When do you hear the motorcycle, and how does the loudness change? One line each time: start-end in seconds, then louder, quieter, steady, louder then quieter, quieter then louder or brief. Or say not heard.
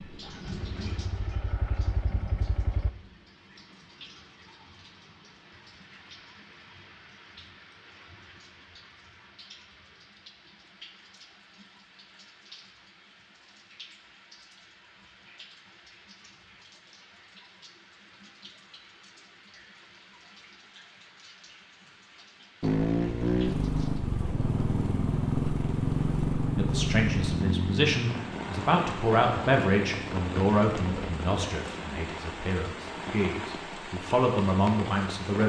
0.0-2.9 brief
22.6-31.3 quieter.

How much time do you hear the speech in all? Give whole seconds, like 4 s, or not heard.
9 s.